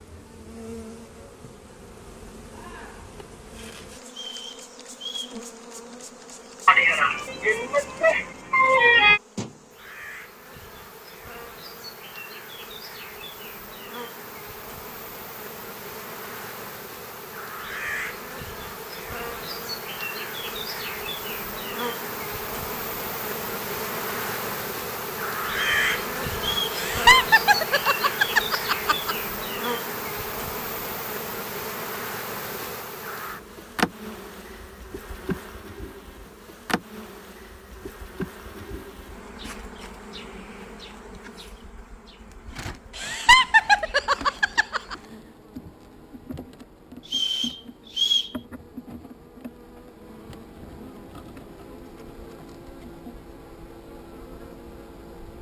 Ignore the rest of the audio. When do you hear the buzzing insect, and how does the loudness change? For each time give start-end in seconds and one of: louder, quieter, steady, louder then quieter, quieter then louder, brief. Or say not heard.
0.0-55.3 louder then quieter.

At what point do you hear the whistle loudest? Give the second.
48 s.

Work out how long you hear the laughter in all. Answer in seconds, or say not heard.
7 s.